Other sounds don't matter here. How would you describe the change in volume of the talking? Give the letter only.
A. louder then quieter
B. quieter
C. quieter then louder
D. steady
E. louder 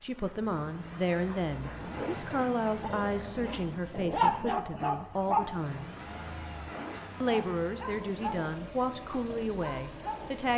D.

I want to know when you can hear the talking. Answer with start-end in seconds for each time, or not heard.
0.0-5.9, 7.2-10.5.